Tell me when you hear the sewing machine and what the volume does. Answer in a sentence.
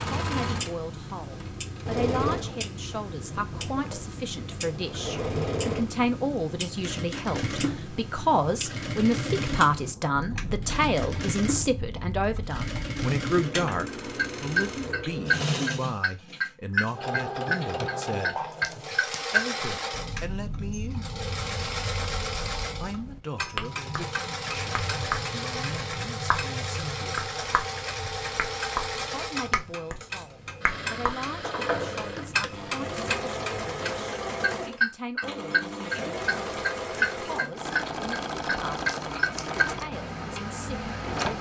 You can hear the sewing machine from 0.0 to 41.3 s, at a steady volume.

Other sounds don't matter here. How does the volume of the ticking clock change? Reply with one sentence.
The volume of the ticking clock goes up.